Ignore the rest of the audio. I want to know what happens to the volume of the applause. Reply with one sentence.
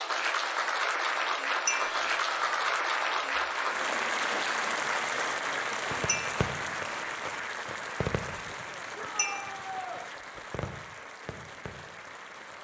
The volume of the applause goes down.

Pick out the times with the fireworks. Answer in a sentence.
You can hear the fireworks from 5.9 to 12.6 s.